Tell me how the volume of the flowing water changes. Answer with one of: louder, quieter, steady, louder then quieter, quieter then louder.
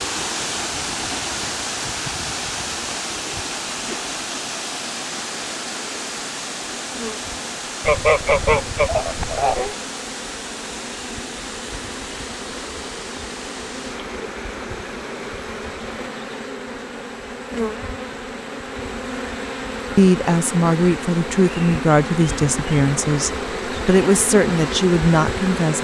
quieter.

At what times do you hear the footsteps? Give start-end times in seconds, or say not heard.
not heard.